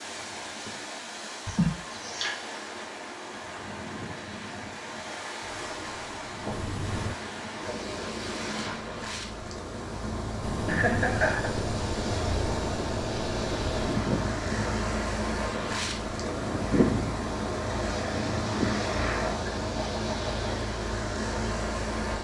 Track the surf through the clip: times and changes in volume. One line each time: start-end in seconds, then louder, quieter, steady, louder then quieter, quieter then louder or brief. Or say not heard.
0.0-22.1 louder.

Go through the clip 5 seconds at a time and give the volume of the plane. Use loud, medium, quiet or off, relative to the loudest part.
off, medium, loud, loud, off.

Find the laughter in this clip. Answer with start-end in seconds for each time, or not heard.
1.4-2.4, 10.7-11.5, 19.4-20.6.